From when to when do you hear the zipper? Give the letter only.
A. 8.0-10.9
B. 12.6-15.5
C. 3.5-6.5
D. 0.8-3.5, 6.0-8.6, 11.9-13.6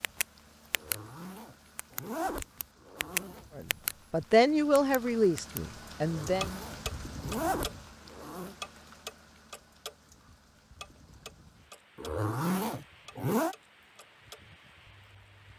D.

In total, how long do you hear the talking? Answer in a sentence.
The talking can be heard for 3 seconds in total.